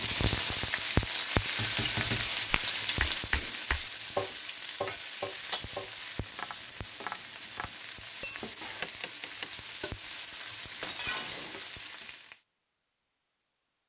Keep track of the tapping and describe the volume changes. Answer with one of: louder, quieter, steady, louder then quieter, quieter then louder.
quieter.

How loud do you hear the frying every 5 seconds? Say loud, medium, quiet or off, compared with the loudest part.
loud, medium, medium.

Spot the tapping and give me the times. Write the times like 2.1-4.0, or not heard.
2.5-10.0.